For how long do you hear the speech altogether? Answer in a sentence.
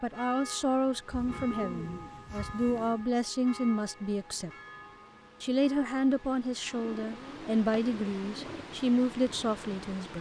You can hear the speech for 9 seconds altogether.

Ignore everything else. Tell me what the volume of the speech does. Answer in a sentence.
The loudness of the speech stays about the same.